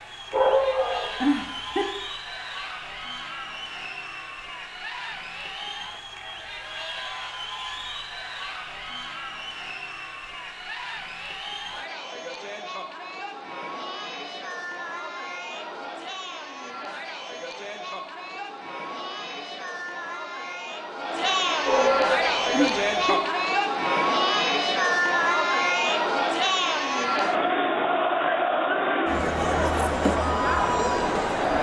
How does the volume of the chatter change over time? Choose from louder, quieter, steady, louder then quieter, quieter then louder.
louder.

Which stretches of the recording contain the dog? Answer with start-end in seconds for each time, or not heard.
0.3-1.9, 21.6-23.1.